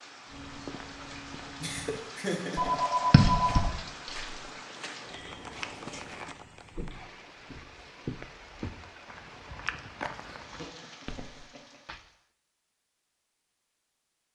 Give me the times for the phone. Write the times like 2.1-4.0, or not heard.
2.5-4.3.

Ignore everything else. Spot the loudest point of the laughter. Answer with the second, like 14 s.
2 s.